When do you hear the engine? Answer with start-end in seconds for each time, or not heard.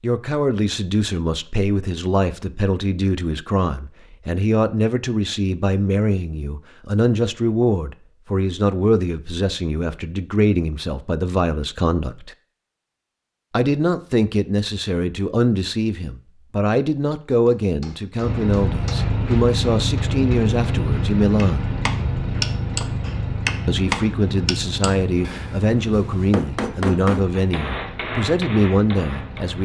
18.2-29.6.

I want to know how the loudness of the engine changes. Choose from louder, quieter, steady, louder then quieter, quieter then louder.
quieter.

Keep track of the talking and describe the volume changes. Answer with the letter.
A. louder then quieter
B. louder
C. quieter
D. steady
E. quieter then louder
D.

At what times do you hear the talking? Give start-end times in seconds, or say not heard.
0.0-12.3, 13.5-21.7, 23.6-29.6.